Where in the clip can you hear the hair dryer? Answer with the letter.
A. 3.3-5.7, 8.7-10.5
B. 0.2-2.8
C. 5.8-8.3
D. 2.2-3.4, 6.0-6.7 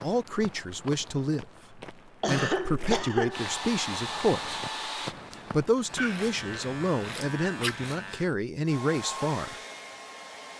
A.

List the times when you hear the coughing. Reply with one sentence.
The coughing can be heard from 2.2 to 3.4 s and from 6.0 to 6.7 s.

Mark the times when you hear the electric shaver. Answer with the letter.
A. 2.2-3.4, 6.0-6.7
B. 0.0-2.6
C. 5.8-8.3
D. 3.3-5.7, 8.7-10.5
C.